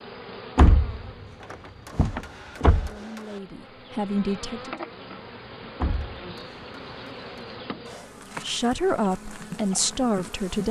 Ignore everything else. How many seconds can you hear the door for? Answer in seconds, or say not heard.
3 s.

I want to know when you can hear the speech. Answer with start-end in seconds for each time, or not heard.
2.8-4.8, 8.4-10.6.